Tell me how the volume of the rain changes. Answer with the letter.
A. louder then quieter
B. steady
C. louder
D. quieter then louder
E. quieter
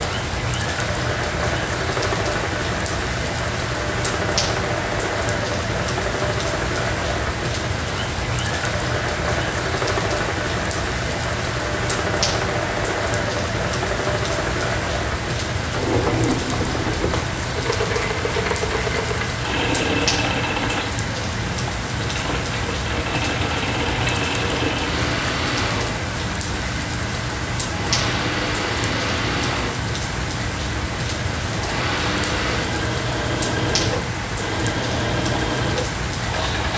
B.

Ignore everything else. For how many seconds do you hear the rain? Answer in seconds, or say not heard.
37 s.